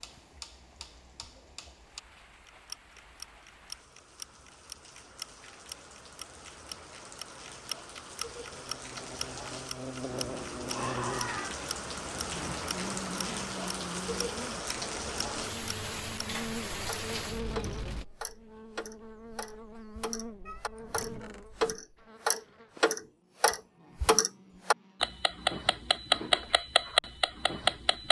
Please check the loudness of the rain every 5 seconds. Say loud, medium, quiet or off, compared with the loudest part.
quiet, medium, loud, loud, off, off.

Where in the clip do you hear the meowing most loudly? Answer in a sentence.
The loudest moment of the meowing is at 11 seconds.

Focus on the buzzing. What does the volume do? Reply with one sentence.
The volume of the buzzing goes down.